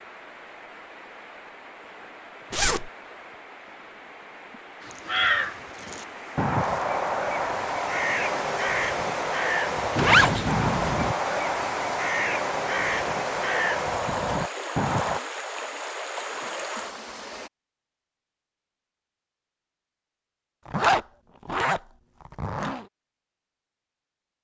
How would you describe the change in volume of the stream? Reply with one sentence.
The volume of the stream goes up.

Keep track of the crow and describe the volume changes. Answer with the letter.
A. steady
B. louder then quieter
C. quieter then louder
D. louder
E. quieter
A.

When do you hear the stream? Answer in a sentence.
The stream can be heard from 0.0 to 17.5 s.